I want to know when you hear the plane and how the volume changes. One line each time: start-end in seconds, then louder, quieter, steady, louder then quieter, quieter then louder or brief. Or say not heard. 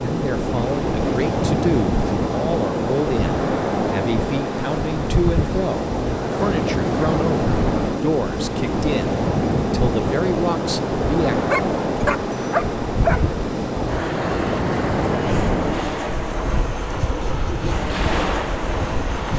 0.0-19.3 steady.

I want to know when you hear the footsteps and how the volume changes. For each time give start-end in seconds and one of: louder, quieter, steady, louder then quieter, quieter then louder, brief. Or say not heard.
not heard.